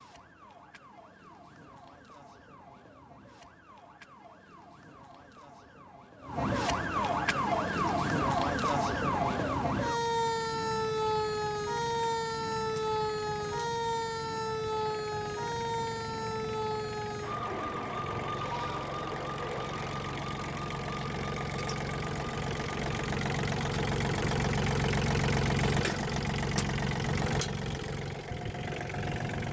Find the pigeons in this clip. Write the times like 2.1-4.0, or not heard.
not heard.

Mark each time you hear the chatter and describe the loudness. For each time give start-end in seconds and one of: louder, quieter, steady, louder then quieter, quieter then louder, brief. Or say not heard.
not heard.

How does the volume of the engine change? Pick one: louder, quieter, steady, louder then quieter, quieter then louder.
louder.